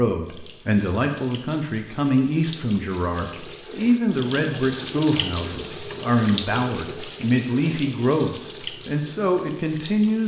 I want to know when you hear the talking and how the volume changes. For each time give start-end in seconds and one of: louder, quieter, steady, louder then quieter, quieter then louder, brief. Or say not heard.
0.0-10.2 steady.